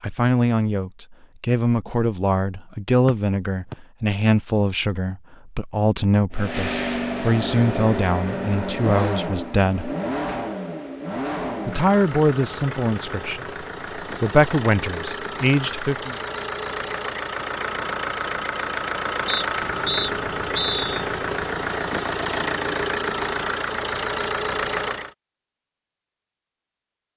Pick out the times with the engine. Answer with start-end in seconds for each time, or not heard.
6.3-25.1.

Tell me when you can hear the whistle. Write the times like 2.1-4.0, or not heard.
3.0-3.8, 19.2-21.1.